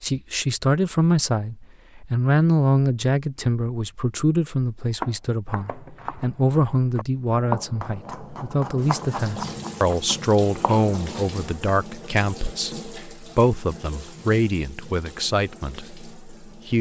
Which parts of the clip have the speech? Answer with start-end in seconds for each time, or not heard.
0.0-16.7.